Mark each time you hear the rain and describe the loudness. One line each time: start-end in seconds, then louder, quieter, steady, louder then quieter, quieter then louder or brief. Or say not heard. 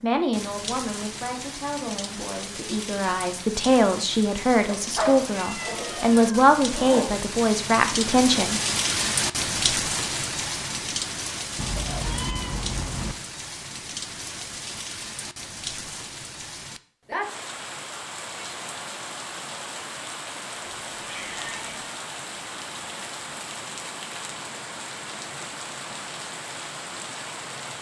0.0-27.7 louder then quieter.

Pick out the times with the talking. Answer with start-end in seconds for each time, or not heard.
0.0-8.6.